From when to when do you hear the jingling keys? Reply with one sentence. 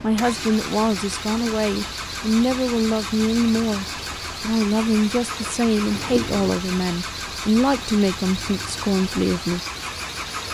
You can hear the jingling keys from 5.9 to 6.5 s.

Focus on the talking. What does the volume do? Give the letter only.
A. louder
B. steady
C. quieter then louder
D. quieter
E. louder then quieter
B.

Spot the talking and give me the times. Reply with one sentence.
The talking can be heard from 0.0 to 9.6 s.